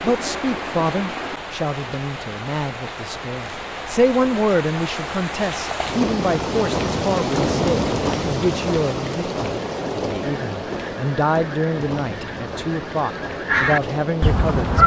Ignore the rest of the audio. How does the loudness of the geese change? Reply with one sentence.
The loudness of the geese goes up.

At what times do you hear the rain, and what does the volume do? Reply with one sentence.
The rain can be heard from 0.0 to 14.8 s, getting louder then quieter.